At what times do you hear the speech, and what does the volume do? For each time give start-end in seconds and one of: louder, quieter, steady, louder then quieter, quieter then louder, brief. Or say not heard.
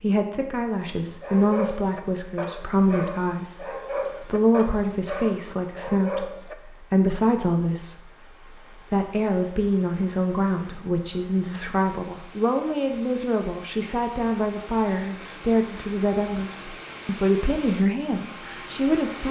0.0-19.2 steady.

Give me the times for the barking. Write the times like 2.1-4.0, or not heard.
0.9-6.5.